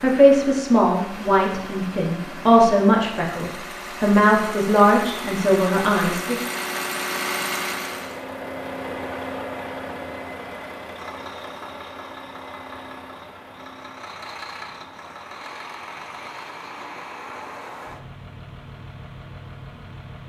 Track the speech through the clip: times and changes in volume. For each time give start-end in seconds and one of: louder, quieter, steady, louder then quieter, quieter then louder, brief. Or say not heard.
0.0-6.3 steady.